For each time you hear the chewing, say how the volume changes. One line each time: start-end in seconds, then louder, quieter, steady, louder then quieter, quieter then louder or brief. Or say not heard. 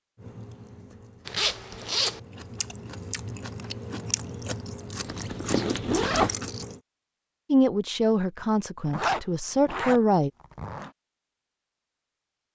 0.1-6.8 louder.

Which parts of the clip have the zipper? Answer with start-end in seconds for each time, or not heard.
1.2-2.2, 5.1-6.3, 8.8-10.9.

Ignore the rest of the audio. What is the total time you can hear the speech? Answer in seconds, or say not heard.
3 s.